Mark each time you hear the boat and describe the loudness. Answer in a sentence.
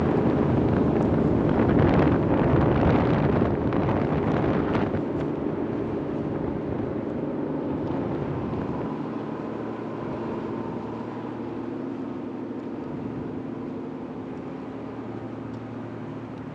The boat can be heard from 0.0 to 16.4 s, getting quieter.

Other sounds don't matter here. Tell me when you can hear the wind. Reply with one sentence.
You can hear the wind from 0.0 to 8.9 s.